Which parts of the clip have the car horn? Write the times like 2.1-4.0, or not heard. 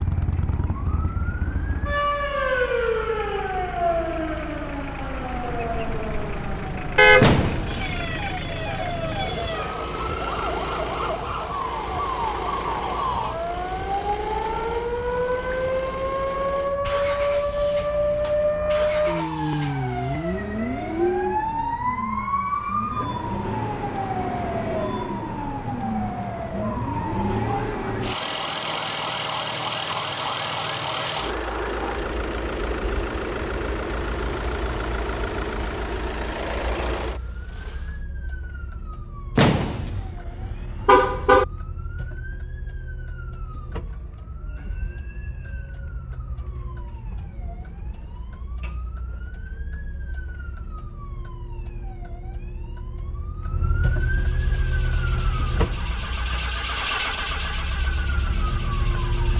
7.0-7.4, 39.9-41.5.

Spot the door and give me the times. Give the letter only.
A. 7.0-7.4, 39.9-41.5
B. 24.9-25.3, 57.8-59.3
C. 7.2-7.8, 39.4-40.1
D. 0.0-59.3
C.